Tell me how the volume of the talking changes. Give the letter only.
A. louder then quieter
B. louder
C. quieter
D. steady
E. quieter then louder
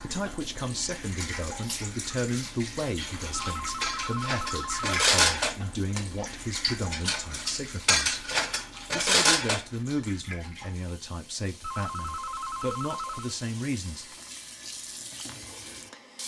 D.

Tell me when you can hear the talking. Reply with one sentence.
The talking can be heard from 0.0 to 8.2 s and from 8.9 to 14.1 s.